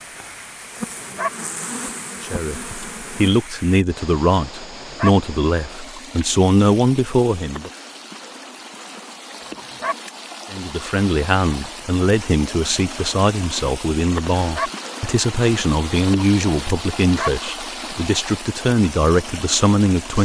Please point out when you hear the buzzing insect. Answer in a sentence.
You can hear the buzzing insect from 0.2 to 3.3 s.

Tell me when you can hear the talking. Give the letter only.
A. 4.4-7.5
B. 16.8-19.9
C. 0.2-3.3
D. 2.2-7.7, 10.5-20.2
D.